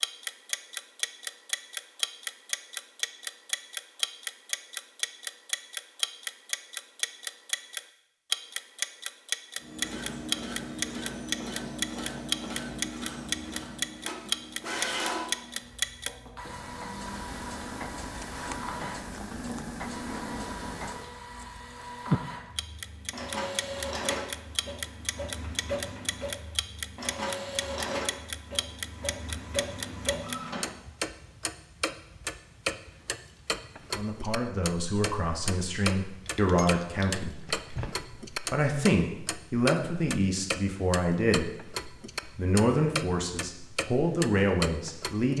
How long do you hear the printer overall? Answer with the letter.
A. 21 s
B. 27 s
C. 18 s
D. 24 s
A.